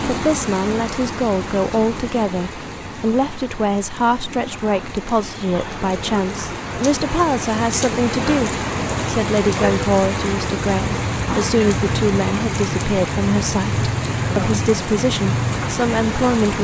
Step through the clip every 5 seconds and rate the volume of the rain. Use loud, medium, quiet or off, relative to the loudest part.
medium, loud, loud, loud.